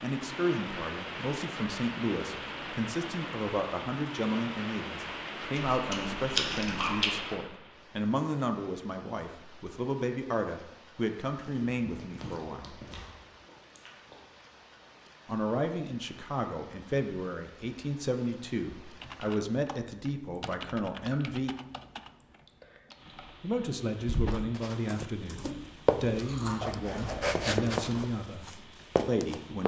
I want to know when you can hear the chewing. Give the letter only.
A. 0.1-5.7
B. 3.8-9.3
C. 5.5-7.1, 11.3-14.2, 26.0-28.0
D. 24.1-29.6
C.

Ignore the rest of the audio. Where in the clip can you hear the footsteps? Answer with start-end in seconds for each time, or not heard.
24.1-29.6.